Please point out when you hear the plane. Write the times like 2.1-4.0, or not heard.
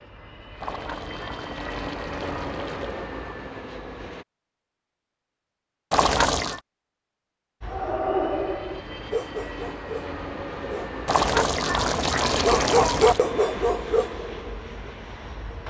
0.0-4.2, 7.6-15.6.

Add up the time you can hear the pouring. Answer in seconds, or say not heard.
5 s.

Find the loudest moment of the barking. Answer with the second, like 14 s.
13 s.